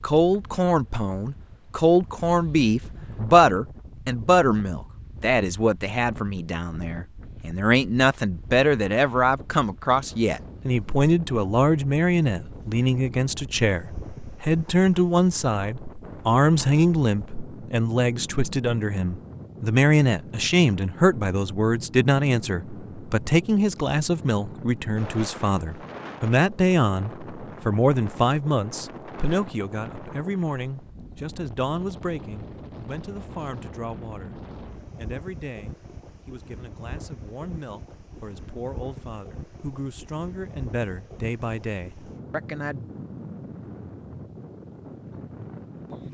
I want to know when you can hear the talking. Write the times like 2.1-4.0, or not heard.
0.0-42.9.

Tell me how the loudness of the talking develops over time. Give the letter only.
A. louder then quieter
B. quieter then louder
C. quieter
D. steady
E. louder
C.